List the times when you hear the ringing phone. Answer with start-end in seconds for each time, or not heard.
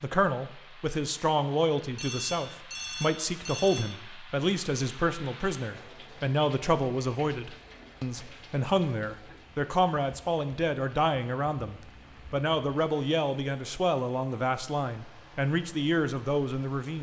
1.9-4.0, 11.6-12.4.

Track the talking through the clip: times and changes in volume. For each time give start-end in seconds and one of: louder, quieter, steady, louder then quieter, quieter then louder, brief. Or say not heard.
0.0-16.9 steady.